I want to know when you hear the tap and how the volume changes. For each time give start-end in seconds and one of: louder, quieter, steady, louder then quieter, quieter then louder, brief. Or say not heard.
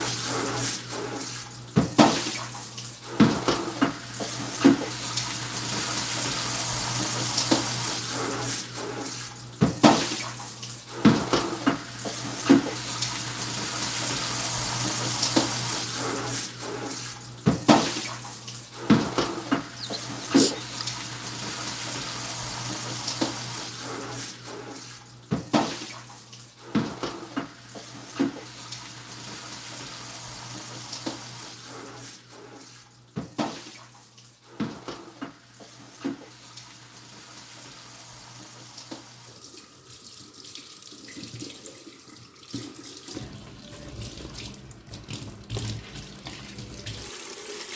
0.0-47.7 quieter.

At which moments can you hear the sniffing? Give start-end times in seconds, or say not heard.
19.8-20.9.